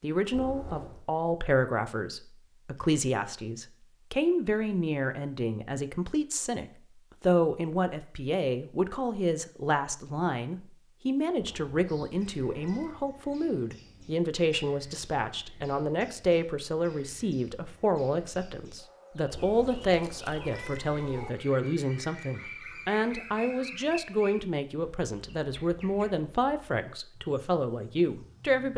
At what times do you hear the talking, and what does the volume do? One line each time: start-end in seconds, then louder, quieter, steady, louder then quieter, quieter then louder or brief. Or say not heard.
0.0-28.7 steady.